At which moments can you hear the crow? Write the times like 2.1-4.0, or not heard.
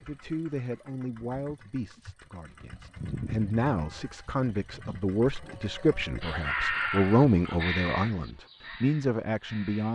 6.2-9.9.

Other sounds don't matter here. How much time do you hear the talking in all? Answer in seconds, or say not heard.
10 s.